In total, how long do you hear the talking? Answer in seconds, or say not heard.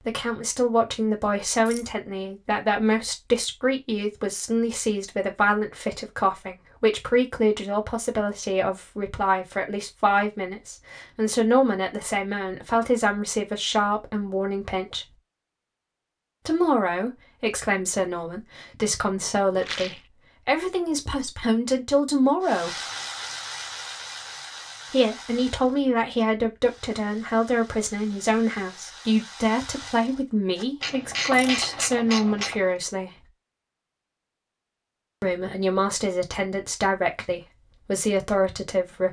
34 s.